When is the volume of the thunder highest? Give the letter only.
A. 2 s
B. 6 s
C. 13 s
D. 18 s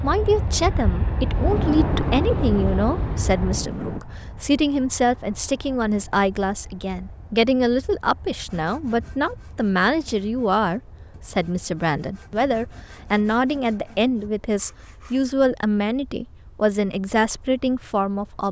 A.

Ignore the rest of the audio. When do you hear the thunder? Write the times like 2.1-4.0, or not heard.
1.3-4.0.